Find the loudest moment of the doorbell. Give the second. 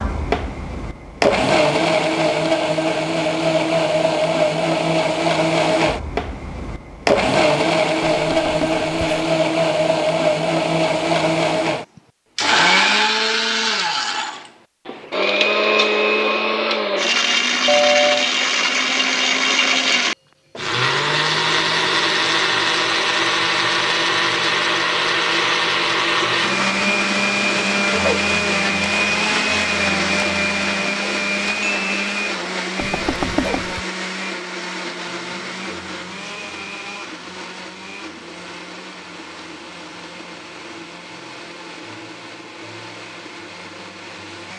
18 s.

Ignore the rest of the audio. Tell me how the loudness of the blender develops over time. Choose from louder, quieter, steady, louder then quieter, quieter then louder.
quieter.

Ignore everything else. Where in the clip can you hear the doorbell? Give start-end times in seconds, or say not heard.
8.0-9.0, 17.6-18.3, 32.8-33.8.